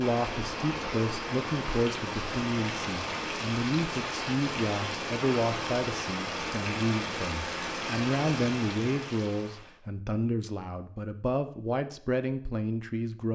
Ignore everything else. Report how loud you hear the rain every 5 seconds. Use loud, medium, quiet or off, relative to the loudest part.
loud, loud, off.